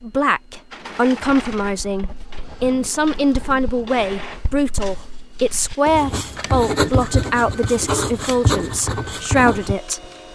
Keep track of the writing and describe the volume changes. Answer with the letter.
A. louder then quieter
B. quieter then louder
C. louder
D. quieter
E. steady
C.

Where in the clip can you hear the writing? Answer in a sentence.
The writing can be heard from 1.2 to 9.8 s.